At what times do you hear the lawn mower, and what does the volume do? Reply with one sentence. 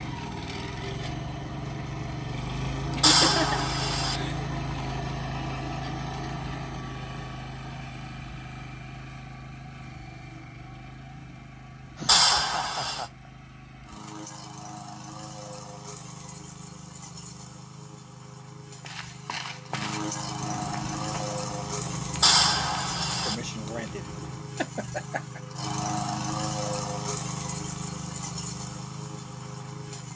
You can hear the lawn mower from 0.0 to 30.1 s, getting quieter then louder.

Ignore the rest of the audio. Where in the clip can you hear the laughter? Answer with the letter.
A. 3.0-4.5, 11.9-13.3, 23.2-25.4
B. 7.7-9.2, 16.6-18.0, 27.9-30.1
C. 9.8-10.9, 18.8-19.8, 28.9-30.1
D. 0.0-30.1
A.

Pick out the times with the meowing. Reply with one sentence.
The meowing can be heard from 3.0 to 4.2 s, from 12.1 to 13.1 s and from 22.2 to 23.4 s.